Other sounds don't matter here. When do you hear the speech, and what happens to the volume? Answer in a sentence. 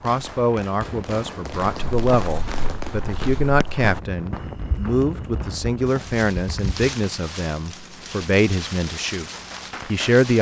The speech can be heard from 0.0 to 10.3 s, at a steady volume.